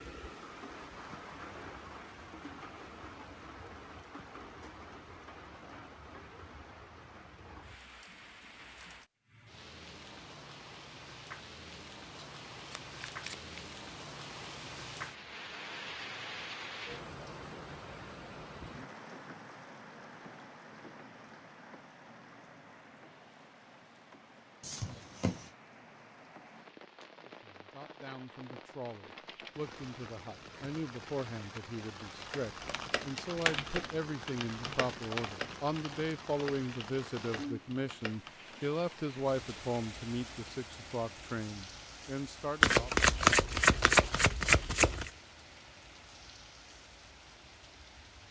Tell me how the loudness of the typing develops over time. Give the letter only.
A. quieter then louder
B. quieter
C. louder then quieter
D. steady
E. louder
B.